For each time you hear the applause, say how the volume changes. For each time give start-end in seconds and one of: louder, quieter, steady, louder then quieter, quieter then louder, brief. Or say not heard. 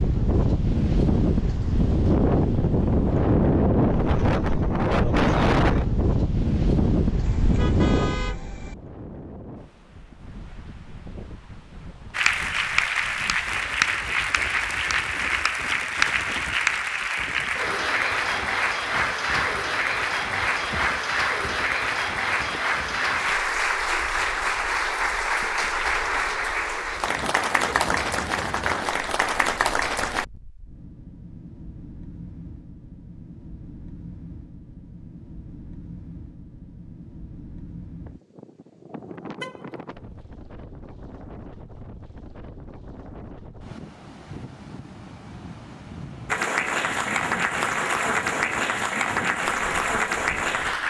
12.1-30.2 steady
46.2-50.8 steady.